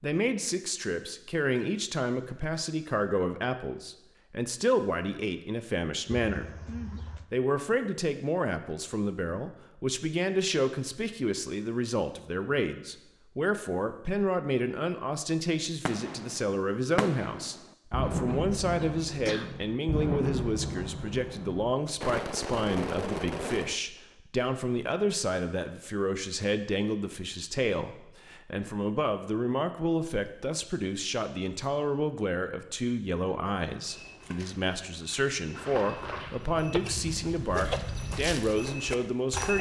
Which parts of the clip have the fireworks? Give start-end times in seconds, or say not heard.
15.8-23.8.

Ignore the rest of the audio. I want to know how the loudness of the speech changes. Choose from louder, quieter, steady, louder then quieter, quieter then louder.
steady.